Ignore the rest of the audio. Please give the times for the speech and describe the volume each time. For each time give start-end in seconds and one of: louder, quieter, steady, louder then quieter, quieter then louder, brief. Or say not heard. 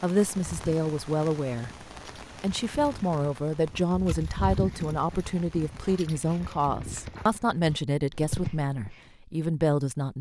0.0-1.7 brief
2.4-10.1 steady.